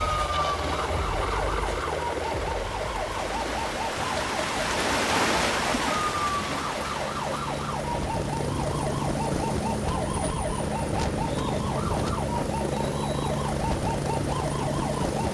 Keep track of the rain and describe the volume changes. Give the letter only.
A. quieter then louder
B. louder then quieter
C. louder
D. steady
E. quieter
E.